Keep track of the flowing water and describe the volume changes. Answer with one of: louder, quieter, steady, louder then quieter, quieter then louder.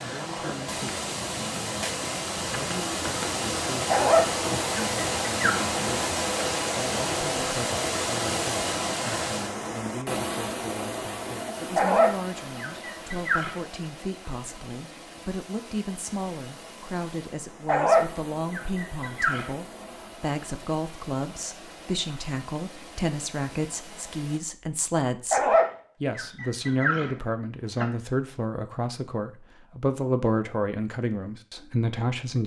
quieter.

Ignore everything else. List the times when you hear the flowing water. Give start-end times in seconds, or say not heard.
0.0-24.4.